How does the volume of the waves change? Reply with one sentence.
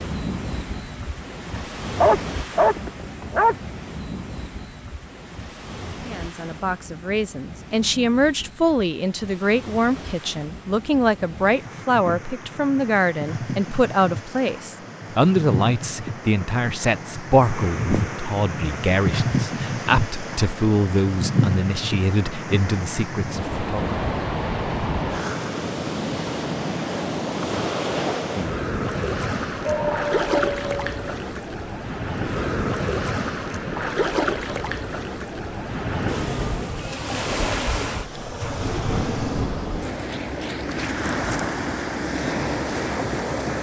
The volume of the waves goes up.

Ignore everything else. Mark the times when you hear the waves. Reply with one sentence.
You can hear the waves from 0.0 to 43.5 s.